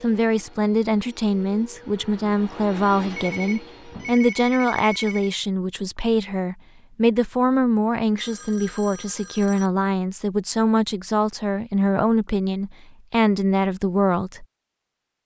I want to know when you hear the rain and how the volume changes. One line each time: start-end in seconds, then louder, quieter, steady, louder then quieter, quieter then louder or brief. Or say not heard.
not heard.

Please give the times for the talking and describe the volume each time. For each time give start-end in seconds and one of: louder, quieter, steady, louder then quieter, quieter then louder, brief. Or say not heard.
0.0-14.4 steady.